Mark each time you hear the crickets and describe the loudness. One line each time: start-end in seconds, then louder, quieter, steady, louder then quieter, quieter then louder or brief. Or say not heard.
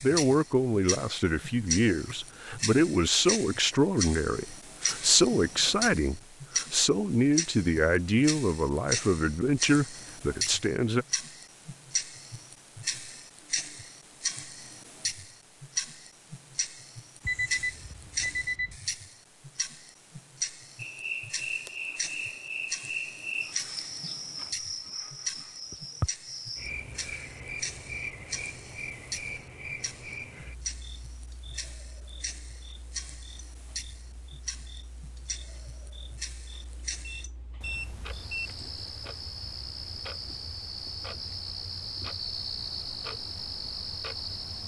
20.8-44.6 quieter then louder.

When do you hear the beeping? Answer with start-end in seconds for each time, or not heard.
17.2-18.8, 37.0-38.5.